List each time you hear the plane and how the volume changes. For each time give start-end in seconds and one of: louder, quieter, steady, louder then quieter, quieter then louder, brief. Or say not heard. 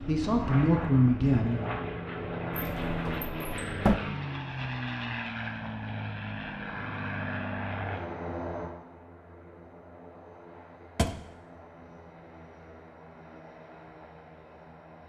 0.0-15.0 quieter.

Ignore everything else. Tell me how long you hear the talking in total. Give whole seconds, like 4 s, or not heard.
2 s.